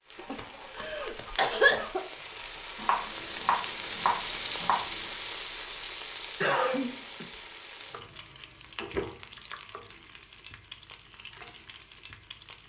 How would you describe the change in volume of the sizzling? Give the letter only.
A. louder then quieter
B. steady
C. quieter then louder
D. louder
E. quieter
A.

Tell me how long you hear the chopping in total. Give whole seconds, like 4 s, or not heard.
2 s.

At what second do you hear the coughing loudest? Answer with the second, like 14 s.
2 s.